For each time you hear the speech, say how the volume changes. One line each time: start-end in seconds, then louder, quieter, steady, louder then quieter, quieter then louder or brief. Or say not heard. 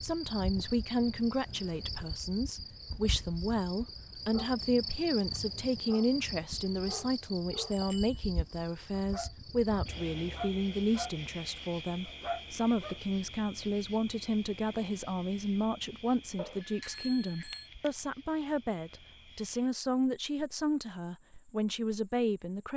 0.0-22.7 steady.